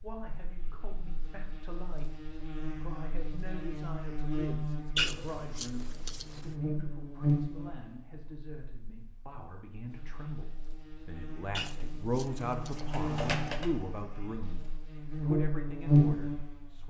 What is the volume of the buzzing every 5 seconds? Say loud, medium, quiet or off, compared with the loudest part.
quiet, medium, quiet, loud.